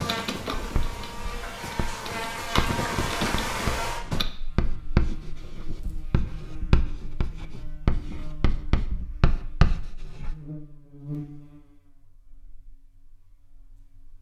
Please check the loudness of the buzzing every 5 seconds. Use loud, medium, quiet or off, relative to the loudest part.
loud, quiet, medium.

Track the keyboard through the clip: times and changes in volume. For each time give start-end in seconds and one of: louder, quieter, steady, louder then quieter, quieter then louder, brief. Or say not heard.
0.0-4.2 quieter then louder.